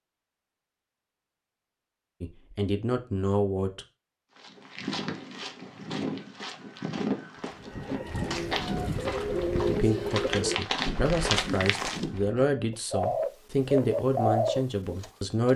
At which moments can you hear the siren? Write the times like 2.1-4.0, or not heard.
not heard.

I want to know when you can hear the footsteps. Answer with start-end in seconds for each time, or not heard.
4.3-12.2.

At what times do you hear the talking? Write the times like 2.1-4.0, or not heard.
2.2-3.9, 9.7-15.5.